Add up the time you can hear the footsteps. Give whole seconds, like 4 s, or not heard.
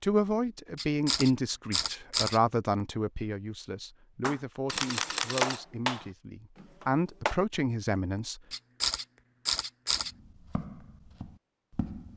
2 s.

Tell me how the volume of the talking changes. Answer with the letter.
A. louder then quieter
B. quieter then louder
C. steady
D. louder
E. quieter
B.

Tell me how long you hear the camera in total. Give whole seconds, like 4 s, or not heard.
4 s.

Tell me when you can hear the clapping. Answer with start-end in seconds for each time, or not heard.
4.2-7.3.